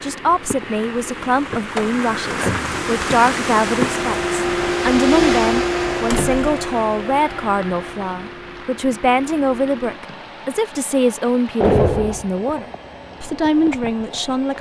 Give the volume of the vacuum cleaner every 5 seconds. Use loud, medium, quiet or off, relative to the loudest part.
loud, loud, quiet.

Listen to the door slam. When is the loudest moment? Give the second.
12 s.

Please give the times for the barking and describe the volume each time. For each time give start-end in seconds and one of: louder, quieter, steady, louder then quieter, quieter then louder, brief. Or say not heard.
not heard.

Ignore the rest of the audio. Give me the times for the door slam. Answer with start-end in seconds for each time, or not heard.
1.8-2.8, 6.1-6.6, 11.6-12.3.